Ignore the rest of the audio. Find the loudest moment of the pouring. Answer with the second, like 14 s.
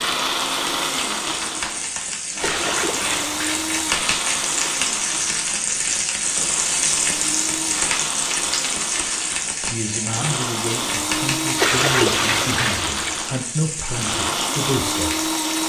12 s.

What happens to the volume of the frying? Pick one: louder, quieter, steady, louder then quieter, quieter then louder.
louder then quieter.